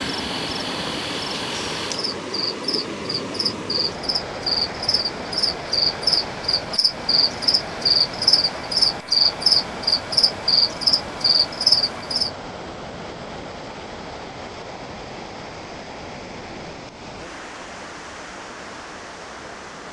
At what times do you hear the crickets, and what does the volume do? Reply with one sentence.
The crickets can be heard from 0.0 to 12.3 s, getting louder.